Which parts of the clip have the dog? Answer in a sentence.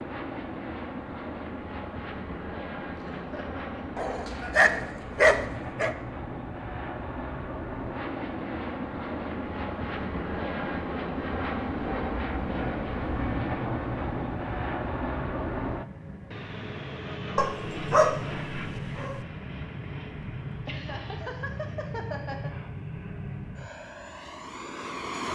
The dog can be heard from 4.0 to 6.0 s and from 17.4 to 19.2 s.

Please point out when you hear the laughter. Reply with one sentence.
The laughter can be heard from 3.0 to 4.7 s and from 20.6 to 22.5 s.